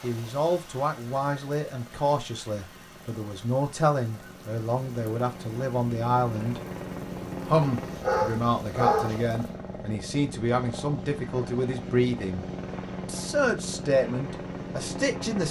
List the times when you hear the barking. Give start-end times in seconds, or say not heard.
7.8-9.2.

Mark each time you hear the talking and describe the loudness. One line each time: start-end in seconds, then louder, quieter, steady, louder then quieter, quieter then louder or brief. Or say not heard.
0.0-6.6 steady
7.5-15.4 steady.